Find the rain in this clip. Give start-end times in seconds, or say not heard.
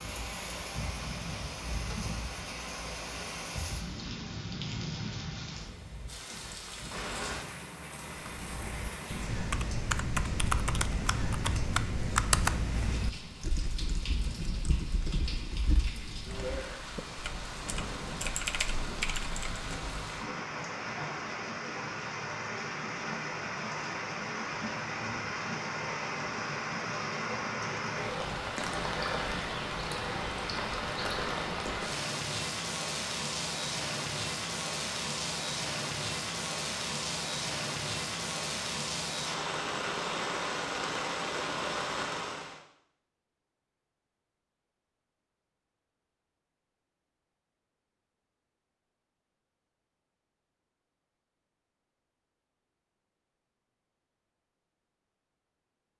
0.0-42.6.